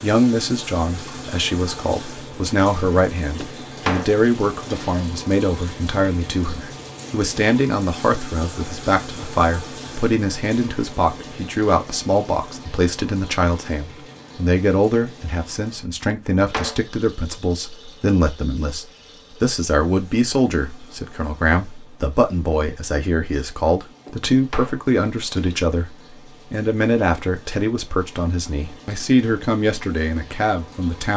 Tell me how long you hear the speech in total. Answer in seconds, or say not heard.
31 s.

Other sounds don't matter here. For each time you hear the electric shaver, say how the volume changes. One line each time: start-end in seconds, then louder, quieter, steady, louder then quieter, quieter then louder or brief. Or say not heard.
not heard.